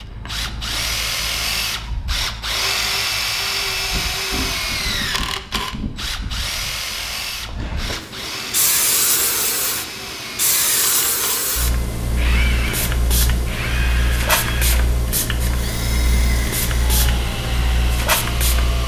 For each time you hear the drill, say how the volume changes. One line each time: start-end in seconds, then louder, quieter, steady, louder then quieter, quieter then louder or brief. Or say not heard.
0.0-18.8 quieter.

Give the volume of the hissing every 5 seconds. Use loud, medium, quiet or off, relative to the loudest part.
quiet, loud, loud, loud.